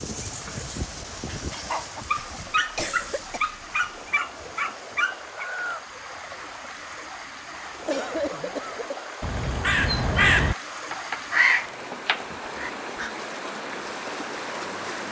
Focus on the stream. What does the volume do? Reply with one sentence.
The loudness of the stream goes up.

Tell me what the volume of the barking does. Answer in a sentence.
The volume of the barking goes up.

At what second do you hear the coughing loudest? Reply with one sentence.
The loudest moment of the coughing is at 8 seconds.